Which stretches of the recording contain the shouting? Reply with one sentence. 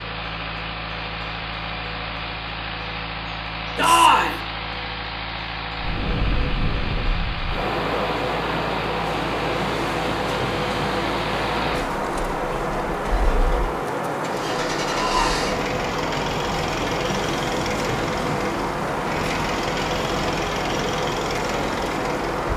You can hear the shouting from 3.8 to 4.4 s and from 14.9 to 15.4 s.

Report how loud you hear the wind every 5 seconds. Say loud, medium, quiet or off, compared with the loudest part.
off, loud, loud, loud, loud.